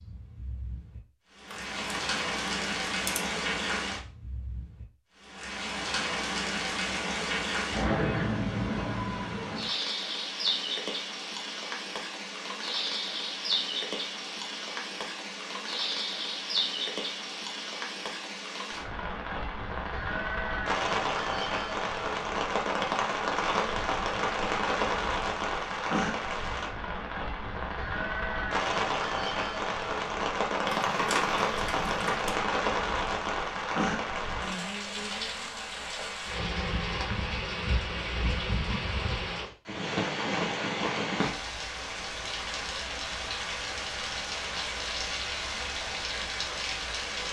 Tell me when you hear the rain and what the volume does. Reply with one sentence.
The rain can be heard from 0.0 to 47.2 s, at a steady volume.